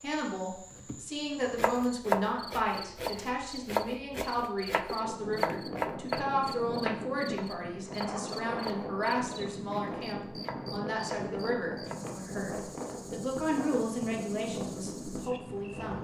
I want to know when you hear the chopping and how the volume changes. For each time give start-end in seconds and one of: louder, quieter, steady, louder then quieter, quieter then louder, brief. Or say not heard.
1.6-11.9 quieter.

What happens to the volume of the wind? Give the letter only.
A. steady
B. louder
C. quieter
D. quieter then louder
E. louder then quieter
A.